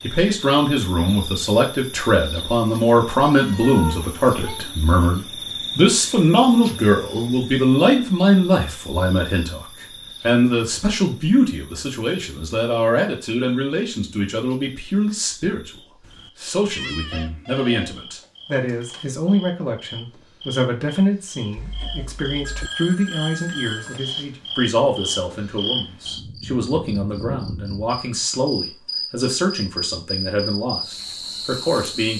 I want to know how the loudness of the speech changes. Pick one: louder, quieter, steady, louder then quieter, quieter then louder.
quieter.